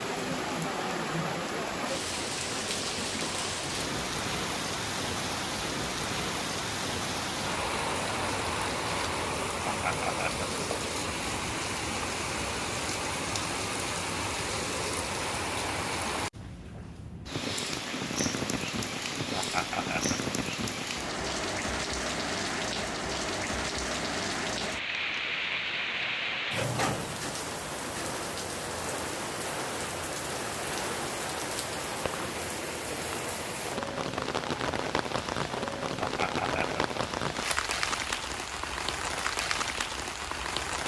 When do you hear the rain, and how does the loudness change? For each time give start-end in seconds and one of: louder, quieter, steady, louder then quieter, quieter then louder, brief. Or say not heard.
0.0-40.8 steady.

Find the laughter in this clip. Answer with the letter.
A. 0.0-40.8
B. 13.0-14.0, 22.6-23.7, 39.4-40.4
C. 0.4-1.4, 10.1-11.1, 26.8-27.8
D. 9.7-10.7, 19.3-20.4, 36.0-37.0
D.